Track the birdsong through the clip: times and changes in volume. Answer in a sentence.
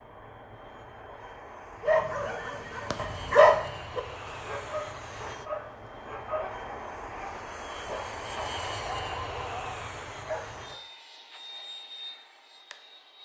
You can't hear the birdsong here.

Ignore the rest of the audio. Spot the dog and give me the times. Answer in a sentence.
You can hear the dog from 1.9 to 10.8 s.